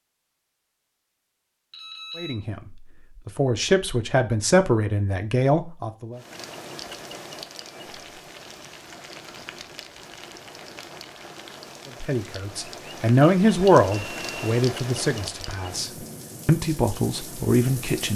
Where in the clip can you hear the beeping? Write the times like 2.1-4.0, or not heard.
1.7-2.4, 13.9-14.6.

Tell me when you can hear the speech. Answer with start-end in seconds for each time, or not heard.
2.1-6.2, 12.0-18.1.